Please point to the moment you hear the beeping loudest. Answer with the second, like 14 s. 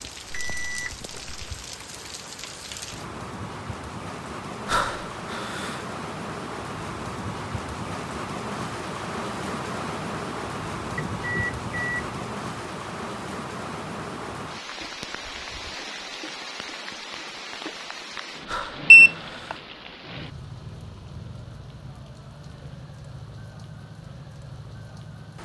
19 s.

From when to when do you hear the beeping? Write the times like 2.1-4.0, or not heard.
0.3-1.4, 10.9-12.2, 18.9-19.6.